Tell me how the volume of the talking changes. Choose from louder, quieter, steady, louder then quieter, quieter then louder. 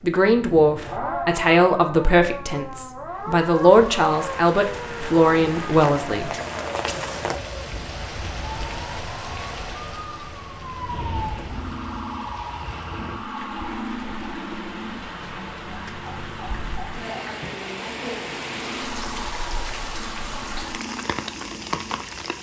steady.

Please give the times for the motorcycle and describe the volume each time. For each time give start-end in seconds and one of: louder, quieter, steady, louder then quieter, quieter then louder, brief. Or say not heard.
not heard.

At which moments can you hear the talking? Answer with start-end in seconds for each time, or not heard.
0.0-6.3.